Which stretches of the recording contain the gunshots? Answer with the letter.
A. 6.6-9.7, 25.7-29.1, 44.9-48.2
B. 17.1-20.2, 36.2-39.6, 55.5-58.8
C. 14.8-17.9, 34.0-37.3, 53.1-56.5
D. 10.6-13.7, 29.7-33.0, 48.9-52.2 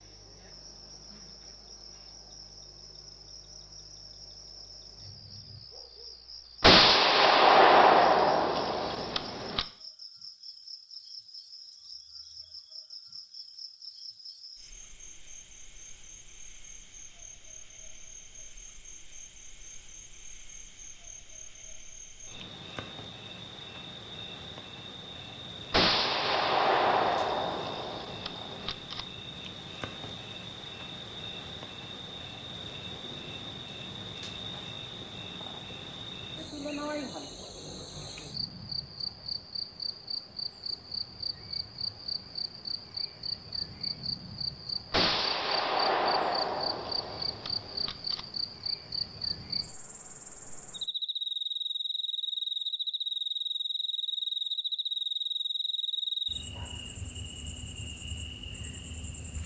A.